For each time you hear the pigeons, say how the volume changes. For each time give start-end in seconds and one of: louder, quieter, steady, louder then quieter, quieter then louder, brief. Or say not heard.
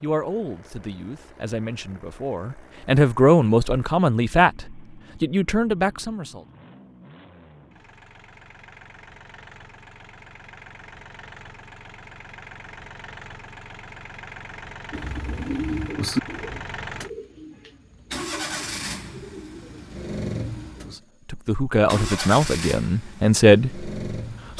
14.9-21.0 quieter.